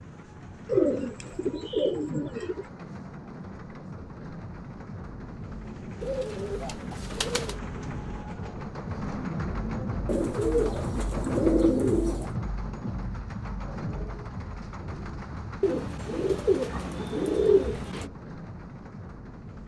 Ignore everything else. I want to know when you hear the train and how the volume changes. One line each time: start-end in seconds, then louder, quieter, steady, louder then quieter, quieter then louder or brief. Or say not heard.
0.0-19.6 louder then quieter.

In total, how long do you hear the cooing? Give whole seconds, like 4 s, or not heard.
8 s.